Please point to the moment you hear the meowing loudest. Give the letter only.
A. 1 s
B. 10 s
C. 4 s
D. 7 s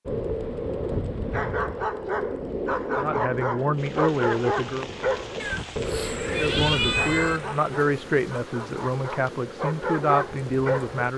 D.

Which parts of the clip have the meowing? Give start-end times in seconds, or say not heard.
5.4-7.4.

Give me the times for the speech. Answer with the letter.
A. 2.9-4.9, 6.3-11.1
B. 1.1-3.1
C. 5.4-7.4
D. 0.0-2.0
A.